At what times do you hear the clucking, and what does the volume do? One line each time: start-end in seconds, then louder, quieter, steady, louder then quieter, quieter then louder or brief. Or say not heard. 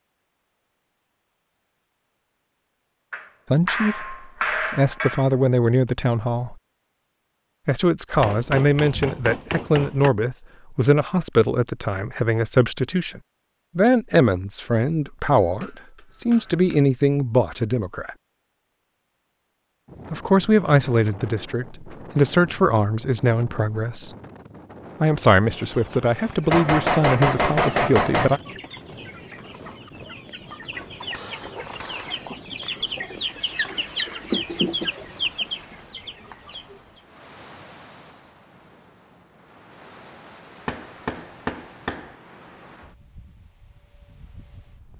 25.2-37.0 louder.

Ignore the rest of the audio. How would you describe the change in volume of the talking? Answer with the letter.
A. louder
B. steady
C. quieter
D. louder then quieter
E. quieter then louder
B.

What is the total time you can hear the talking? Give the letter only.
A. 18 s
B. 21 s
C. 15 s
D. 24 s
B.